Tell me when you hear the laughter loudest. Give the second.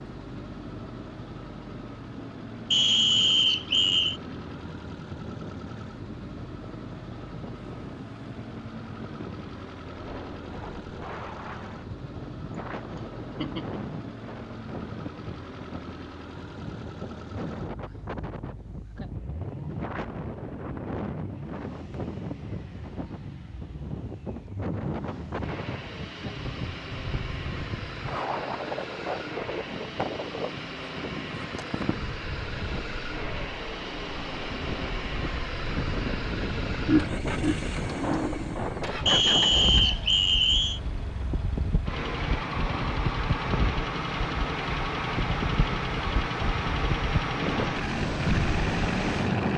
37 s.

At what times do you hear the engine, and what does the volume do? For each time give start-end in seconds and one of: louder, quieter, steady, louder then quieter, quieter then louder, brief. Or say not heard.
0.0-49.5 louder.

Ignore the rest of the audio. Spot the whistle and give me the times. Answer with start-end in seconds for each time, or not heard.
2.7-4.2, 39.0-40.8.